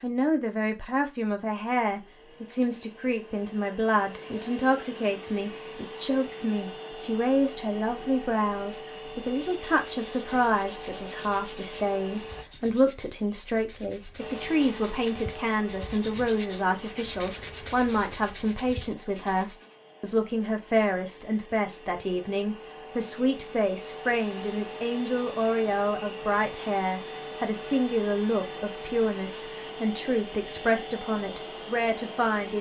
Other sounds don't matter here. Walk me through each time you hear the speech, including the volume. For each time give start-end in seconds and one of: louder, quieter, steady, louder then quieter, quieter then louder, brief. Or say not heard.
0.0-32.5 steady.